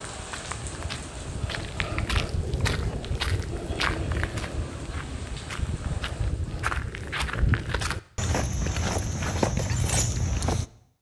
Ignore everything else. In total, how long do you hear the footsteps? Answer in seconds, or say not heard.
11 s.